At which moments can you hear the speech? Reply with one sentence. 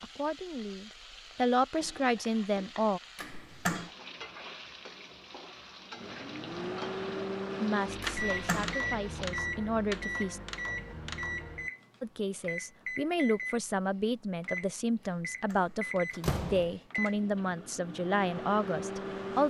You can hear the speech from 0.0 to 3.0 s, from 7.6 to 10.4 s and from 12.0 to 19.4 s.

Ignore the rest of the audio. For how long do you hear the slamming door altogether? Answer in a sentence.
You can hear the slamming door for 3 seconds altogether.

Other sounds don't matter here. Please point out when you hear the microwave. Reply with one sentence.
The microwave can be heard from 6.0 to 19.4 s.